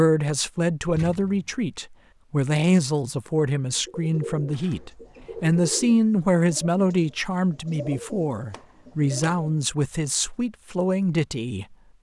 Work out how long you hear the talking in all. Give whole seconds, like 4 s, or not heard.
12 s.